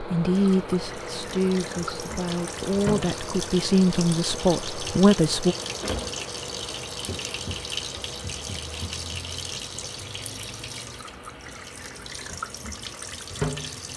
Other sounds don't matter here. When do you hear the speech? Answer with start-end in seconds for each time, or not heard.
0.0-5.5.